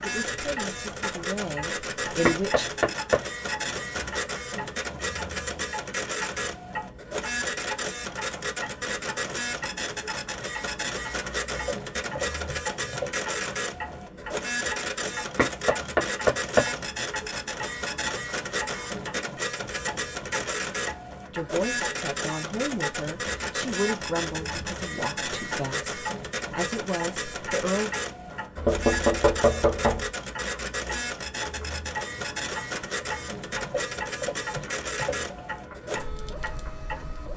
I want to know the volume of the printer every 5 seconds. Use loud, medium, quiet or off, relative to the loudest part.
loud, loud, loud, loud, loud, loud, loud, medium.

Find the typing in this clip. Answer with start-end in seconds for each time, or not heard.
11.4-13.2, 33.5-35.5.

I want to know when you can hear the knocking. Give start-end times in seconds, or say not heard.
2.2-3.2, 15.3-16.7, 28.6-30.1.